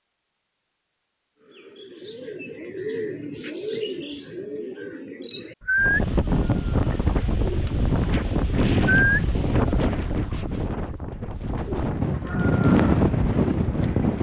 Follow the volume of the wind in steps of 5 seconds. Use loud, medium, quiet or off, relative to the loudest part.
off, loud, loud.